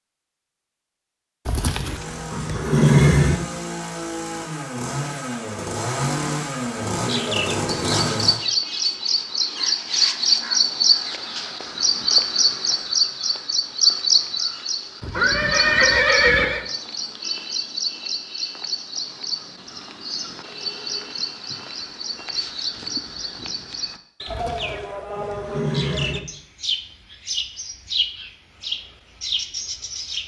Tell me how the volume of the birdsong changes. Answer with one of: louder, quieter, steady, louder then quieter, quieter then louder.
quieter.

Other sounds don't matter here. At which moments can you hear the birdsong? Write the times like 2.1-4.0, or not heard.
7.0-30.2.